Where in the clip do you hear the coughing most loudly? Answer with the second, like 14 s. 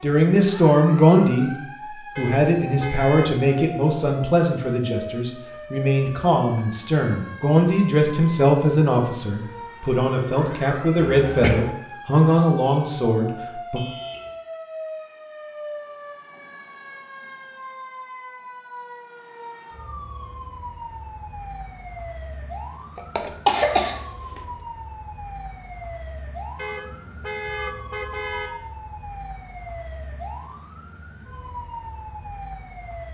24 s.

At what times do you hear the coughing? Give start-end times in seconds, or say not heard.
11.1-11.7, 22.9-24.4.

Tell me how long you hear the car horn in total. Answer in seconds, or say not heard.
4 s.